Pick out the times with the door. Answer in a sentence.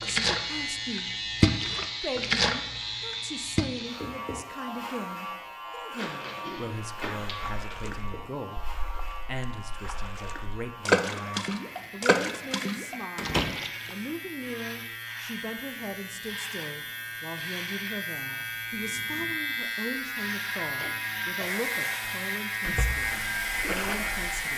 The door can be heard from 6.0 to 7.8 s and from 13.2 to 13.6 s.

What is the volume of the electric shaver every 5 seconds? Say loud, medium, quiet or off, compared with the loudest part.
loud, medium, medium, loud, loud.